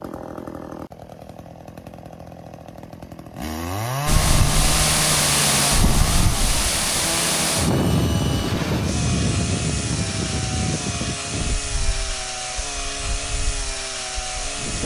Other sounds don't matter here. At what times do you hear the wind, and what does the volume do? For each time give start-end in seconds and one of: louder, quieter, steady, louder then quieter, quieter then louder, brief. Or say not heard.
4.0-14.8 quieter.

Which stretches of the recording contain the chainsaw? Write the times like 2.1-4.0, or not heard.
0.0-14.8.